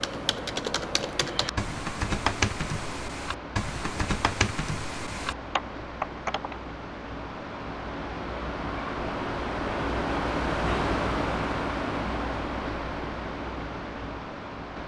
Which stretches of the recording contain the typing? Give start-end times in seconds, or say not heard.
0.0-6.5.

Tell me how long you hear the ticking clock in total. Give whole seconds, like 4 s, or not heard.
not heard.